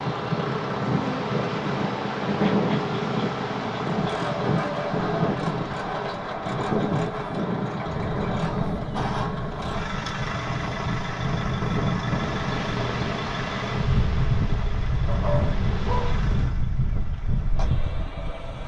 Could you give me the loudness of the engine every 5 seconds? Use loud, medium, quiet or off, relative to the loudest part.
loud, loud, loud, medium.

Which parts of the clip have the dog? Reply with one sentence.
The dog can be heard from 15.1 to 16.2 s.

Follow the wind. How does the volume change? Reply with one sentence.
The loudness of the wind stays about the same.